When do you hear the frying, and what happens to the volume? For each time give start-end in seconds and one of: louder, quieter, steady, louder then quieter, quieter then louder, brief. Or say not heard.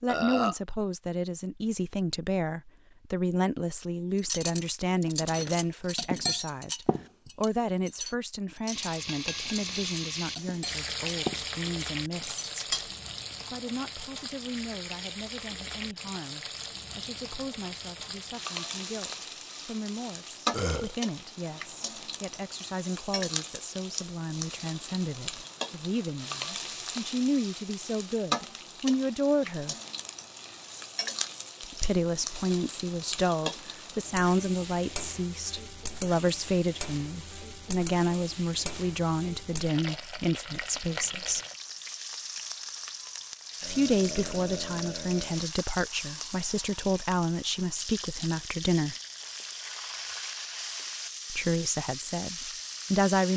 8.7-53.3 steady.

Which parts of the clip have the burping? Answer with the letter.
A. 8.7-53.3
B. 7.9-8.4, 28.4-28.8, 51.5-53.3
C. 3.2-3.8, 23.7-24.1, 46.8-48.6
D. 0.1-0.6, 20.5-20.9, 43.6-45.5
D.